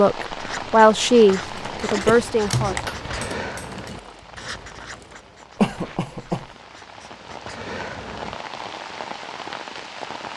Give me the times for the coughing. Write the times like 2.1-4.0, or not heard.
1.8-2.2, 5.5-6.5.